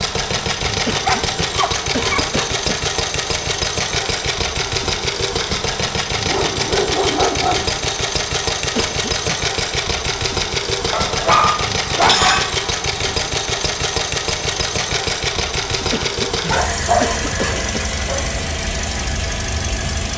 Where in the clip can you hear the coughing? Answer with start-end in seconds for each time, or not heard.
0.8-2.9, 8.8-9.4, 15.9-17.9.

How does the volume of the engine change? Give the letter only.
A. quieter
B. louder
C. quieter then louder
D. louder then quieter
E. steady
E.